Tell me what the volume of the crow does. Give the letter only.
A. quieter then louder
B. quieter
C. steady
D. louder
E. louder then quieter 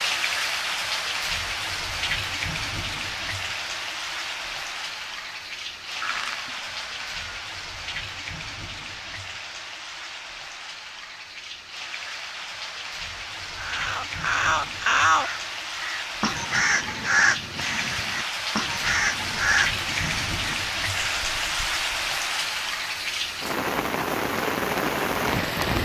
B.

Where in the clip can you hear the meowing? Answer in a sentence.
The meowing can be heard from 6.0 to 7.2 s.